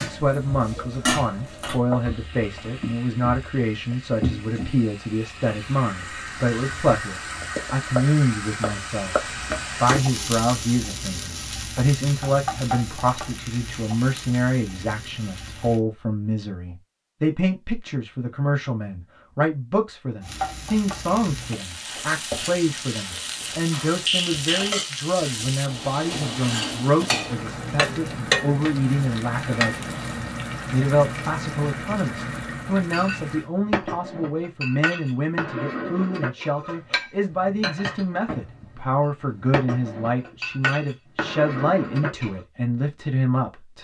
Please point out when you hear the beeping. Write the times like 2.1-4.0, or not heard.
not heard.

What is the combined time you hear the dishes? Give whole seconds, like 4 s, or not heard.
11 s.